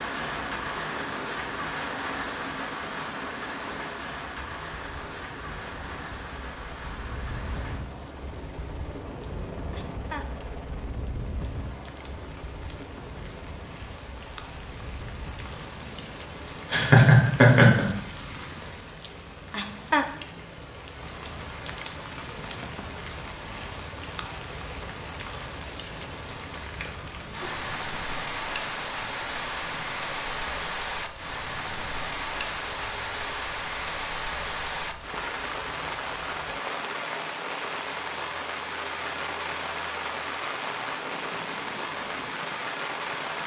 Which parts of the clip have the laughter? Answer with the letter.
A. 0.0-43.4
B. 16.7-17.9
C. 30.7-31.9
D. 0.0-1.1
B.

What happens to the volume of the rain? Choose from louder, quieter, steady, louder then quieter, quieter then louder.
quieter then louder.